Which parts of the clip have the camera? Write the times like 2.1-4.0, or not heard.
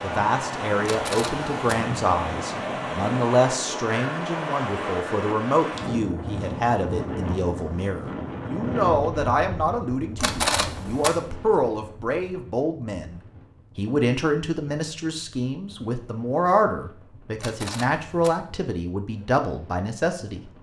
0.8-1.8, 10.2-11.1, 17.4-18.3.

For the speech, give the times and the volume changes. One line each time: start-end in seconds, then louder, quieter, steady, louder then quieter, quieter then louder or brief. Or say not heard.
0.0-20.5 steady.